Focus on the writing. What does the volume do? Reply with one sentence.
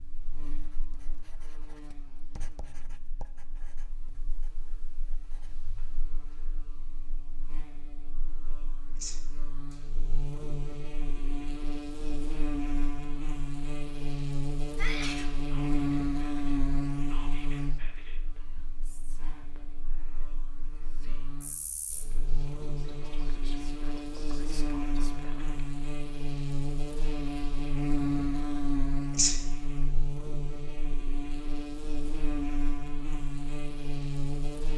The volume of the writing goes up, then down.